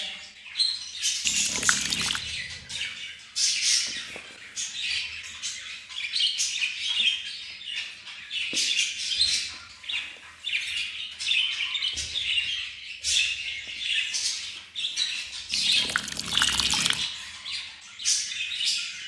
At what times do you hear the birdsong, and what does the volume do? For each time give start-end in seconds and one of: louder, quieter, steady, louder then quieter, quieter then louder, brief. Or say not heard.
0.0-19.0 steady.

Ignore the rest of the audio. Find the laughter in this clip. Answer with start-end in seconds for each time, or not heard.
not heard.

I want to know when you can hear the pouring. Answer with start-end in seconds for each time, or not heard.
1.2-2.2, 15.5-17.1.